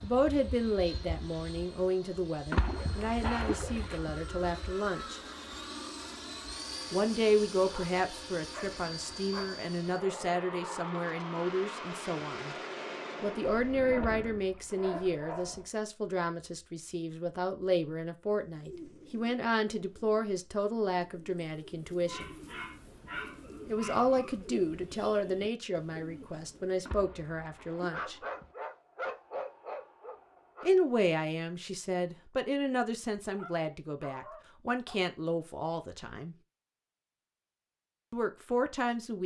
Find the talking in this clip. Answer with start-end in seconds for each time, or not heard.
0.0-5.2, 6.9-12.6, 13.2-22.3, 23.6-28.1, 30.6-36.4, 38.1-39.2.